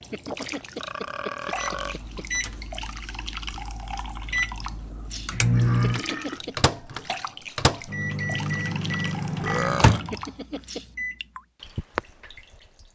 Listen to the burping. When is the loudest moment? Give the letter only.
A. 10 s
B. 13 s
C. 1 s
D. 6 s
A.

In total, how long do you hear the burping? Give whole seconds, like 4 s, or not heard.
4 s.